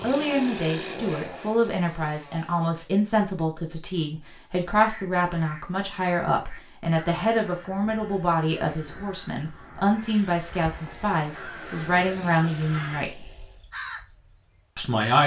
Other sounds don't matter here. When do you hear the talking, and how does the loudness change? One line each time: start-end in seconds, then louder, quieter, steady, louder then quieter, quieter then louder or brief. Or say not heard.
0.0-13.3 steady
14.8-15.2 brief.